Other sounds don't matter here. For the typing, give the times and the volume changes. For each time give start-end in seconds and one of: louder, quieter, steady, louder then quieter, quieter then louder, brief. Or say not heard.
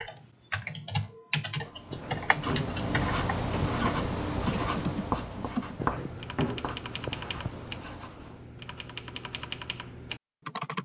0.0-10.7 quieter.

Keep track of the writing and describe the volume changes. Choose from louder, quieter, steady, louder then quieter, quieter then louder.
quieter.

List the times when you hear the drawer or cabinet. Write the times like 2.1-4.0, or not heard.
1.9-2.8, 5.8-7.3.